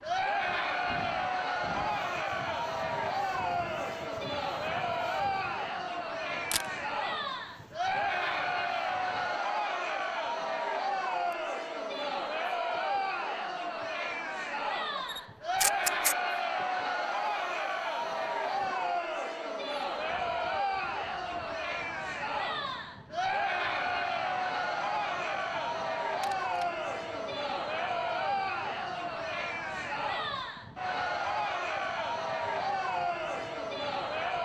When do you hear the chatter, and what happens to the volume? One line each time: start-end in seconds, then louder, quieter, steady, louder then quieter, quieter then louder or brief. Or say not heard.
0.0-34.4 steady.